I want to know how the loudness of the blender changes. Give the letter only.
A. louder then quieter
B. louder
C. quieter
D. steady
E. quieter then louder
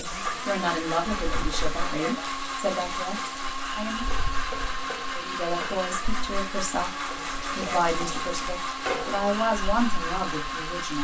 D.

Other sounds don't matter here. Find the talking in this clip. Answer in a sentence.
The talking can be heard from 0.0 to 4.0 s and from 5.1 to 10.9 s.